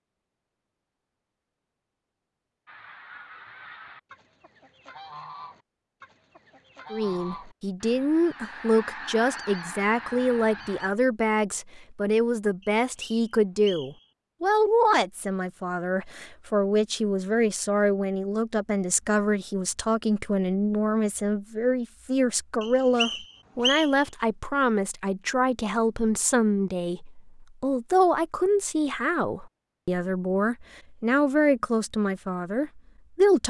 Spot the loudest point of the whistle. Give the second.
24 s.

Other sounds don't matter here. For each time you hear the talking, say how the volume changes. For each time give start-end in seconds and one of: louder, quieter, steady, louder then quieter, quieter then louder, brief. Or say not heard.
6.9-33.4 steady.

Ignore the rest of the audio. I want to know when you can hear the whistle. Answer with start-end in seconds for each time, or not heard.
12.6-14.1, 22.6-24.1.